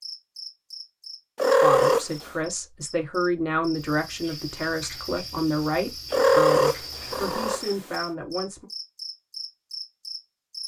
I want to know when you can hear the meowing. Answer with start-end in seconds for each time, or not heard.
1.4-2.3, 6.1-8.0.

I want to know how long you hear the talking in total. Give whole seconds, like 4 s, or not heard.
7 s.